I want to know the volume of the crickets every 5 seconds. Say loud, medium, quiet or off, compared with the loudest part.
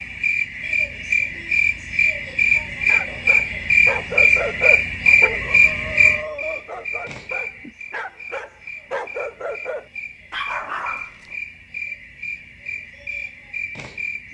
loud, loud, quiet.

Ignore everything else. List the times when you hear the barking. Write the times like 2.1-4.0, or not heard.
2.9-11.3.